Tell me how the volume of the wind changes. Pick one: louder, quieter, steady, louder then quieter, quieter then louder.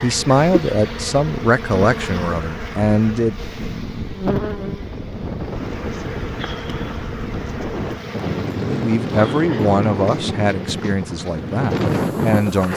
louder.